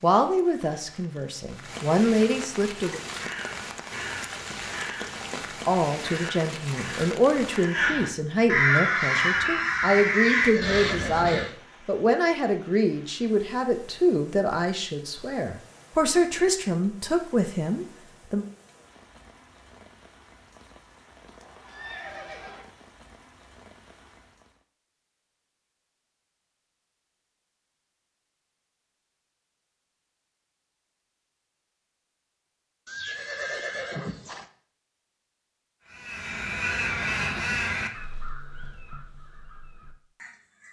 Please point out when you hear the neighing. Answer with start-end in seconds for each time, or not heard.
10.1-11.5, 21.4-22.6, 32.9-34.5.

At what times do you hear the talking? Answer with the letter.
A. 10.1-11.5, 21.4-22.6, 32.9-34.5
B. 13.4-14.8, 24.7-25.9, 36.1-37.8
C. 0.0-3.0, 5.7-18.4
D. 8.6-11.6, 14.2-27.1
C.